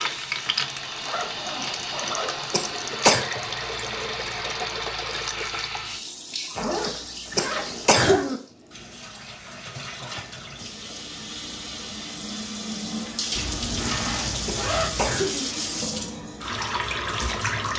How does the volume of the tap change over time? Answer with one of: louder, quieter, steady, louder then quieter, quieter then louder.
quieter then louder.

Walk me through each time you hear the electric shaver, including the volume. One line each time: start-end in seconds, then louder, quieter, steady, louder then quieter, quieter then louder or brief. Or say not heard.
not heard.